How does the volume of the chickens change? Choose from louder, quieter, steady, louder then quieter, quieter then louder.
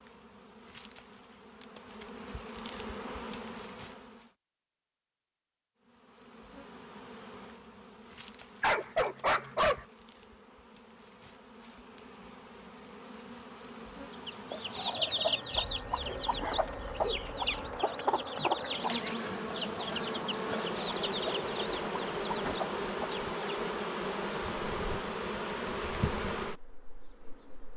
quieter.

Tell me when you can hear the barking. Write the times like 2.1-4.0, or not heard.
8.6-9.8, 15.6-17.8.